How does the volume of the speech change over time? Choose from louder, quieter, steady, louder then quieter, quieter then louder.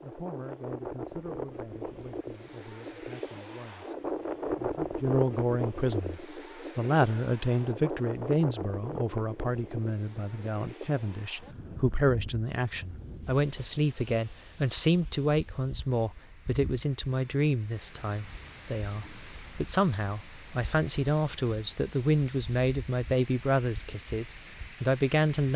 louder.